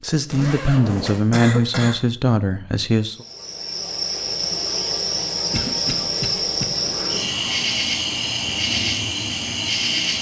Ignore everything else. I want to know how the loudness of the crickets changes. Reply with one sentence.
The volume of the crickets stays about the same.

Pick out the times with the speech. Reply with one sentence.
The speech can be heard from 0.0 to 3.2 s.